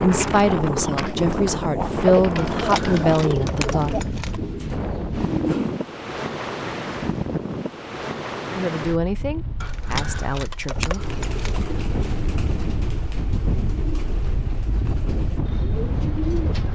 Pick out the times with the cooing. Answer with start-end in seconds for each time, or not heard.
0.0-5.8, 10.9-16.7.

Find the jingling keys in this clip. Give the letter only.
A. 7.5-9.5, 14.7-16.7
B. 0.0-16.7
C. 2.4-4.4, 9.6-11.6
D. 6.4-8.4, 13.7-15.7
C.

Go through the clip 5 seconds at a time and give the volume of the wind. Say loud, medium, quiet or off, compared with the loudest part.
loud, loud, medium, loud.